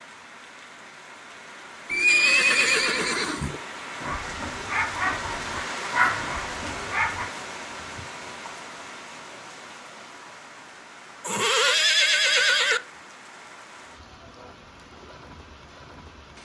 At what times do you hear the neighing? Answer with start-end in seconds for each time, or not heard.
1.9-3.6, 11.2-12.8.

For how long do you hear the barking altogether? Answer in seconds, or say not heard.
3 s.